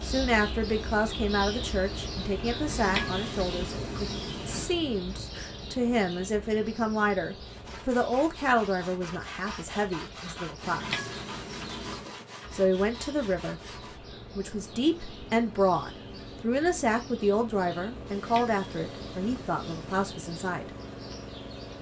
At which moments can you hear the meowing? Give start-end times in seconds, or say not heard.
2.6-4.7, 10.6-12.2, 18.1-20.1.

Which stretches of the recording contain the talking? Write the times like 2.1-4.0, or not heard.
0.0-11.1, 12.5-13.6, 14.3-20.7.